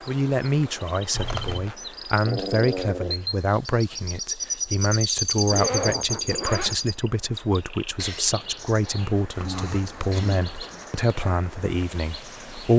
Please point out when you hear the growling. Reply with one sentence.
You can hear the growling from 2.2 to 3.1 s and from 9.4 to 10.4 s.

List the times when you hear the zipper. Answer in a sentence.
You can hear the zipper from 1.1 to 1.8 s, from 5.5 to 6.8 s and from 8.8 to 10.8 s.